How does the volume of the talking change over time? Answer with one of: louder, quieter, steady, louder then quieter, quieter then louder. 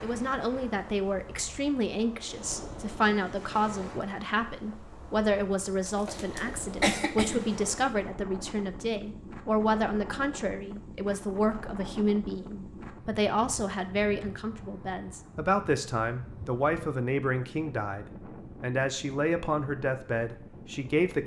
steady.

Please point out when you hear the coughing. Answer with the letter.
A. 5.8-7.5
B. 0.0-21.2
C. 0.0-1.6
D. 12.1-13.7
A.